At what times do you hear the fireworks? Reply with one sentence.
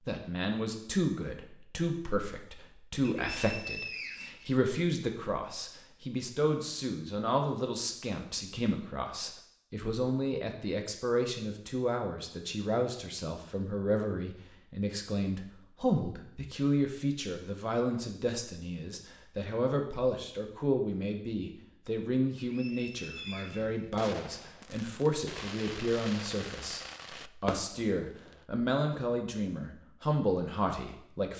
The fireworks can be heard from 23.1 to 28.4 s.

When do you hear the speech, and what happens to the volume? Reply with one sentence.
You can hear the speech from 0.0 to 31.3 s, at a steady volume.